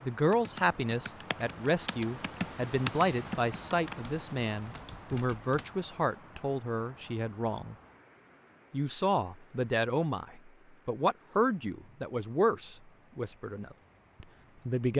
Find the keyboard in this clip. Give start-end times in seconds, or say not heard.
0.3-5.8.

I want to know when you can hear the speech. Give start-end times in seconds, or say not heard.
0.0-7.8, 8.7-14.9.